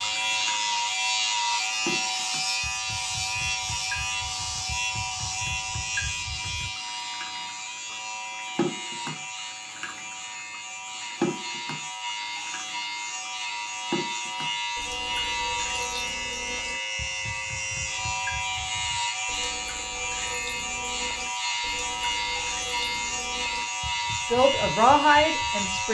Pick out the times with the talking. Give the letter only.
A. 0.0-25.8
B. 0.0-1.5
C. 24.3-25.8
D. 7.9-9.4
C.